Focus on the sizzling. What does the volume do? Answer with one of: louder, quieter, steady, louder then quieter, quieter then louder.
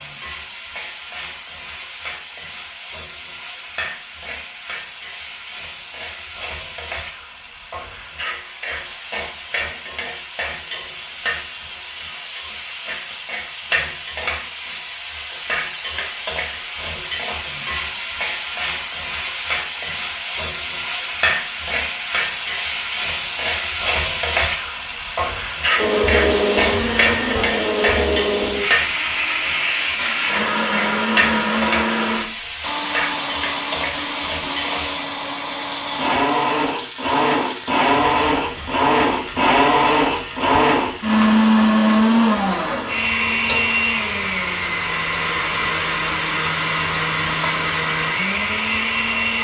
louder then quieter.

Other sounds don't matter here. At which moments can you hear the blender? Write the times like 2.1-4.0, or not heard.
25.8-49.3.